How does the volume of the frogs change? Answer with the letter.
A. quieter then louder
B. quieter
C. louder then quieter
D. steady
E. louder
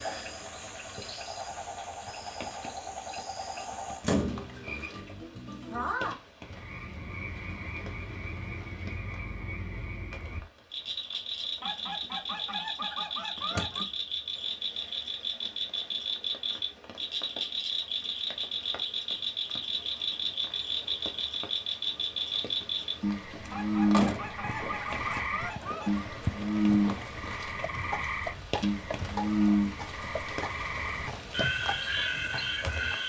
E.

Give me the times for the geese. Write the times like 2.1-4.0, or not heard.
11.6-13.8, 23.5-26.1.